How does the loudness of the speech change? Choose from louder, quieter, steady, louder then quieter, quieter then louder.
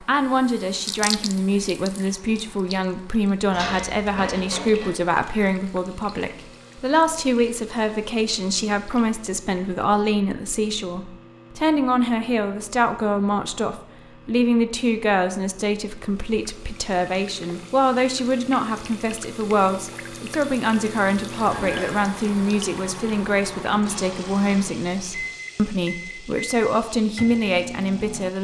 steady.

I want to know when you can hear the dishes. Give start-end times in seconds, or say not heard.
3.5-4.9, 21.4-22.1.